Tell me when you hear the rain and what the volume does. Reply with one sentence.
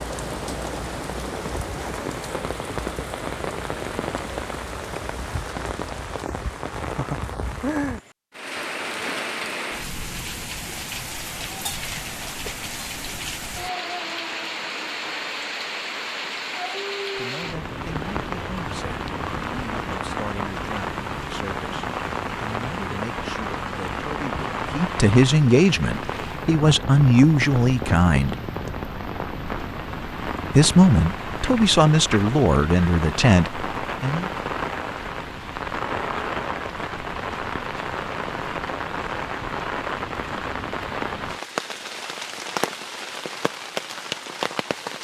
You can hear the rain from 0.0 to 44.9 s, at a steady volume.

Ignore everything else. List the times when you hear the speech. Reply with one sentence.
The speech can be heard from 17.1 to 28.4 s and from 30.5 to 34.3 s.